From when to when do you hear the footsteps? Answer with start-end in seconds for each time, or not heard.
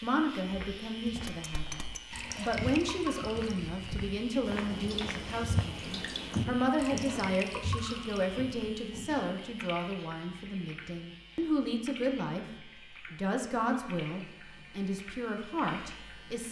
0.6-9.2.